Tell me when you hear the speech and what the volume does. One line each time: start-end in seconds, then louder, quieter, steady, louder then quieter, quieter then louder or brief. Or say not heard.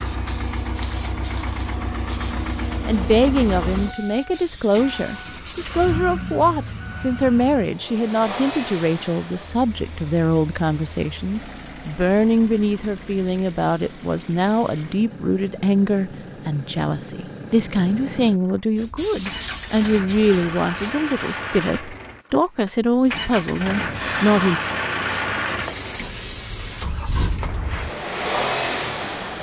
2.9-24.6 steady.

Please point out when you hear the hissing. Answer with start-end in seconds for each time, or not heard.
0.0-6.0, 18.8-20.9, 23.0-29.3.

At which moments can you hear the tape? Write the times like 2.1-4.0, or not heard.
not heard.